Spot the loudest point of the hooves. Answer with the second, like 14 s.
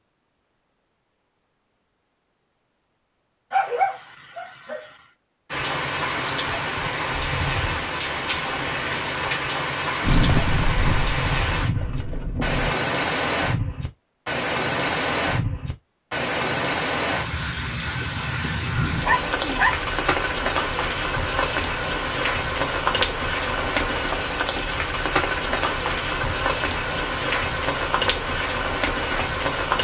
10 s.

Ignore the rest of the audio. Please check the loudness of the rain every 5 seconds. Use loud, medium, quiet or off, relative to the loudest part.
off, loud, loud, loud, loud, loud.